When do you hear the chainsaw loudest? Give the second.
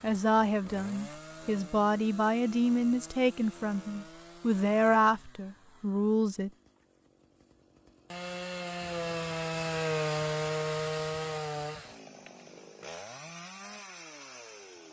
10 s.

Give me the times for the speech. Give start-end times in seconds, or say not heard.
0.0-6.5.